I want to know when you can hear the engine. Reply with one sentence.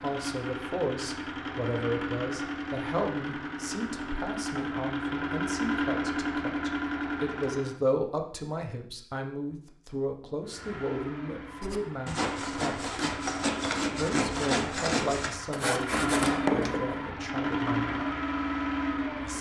The engine can be heard from 0.0 to 7.8 s and from 10.4 to 19.3 s.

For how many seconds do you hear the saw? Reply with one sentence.
You can hear the saw for 5 seconds altogether.